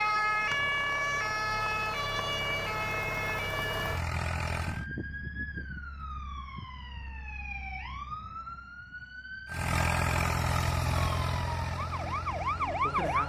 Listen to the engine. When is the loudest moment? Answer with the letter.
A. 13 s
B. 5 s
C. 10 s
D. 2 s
C.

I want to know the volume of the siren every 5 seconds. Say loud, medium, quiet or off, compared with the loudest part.
loud, medium, loud.